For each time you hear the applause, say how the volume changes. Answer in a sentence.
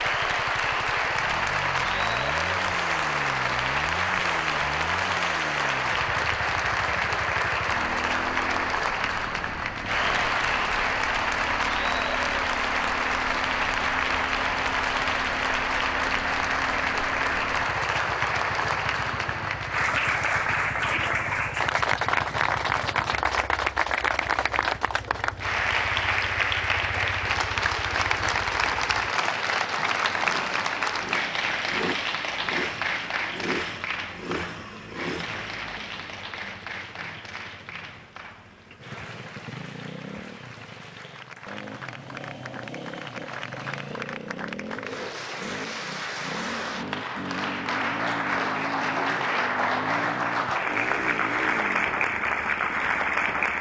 The applause can be heard from 0.0 to 53.5 s, getting quieter then louder.